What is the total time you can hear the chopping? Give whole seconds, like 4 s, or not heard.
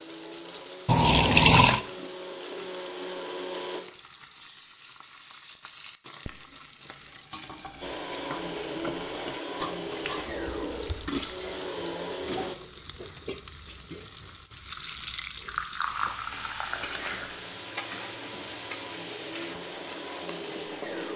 not heard.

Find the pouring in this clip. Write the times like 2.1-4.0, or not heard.
0.8-1.8, 10.0-11.3, 14.9-17.4.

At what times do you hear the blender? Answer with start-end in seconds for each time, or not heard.
0.0-3.9, 7.8-12.6, 16.6-21.1.